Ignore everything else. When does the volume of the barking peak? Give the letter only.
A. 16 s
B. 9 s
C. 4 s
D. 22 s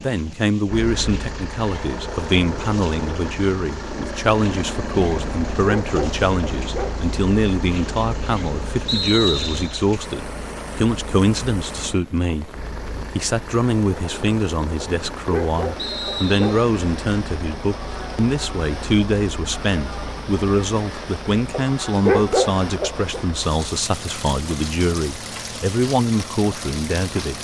D.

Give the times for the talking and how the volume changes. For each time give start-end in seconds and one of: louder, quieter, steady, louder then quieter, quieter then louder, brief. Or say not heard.
0.0-27.3 steady.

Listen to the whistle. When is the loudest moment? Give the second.
9 s.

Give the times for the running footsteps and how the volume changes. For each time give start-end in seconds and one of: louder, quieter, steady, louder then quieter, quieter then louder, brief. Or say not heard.
not heard.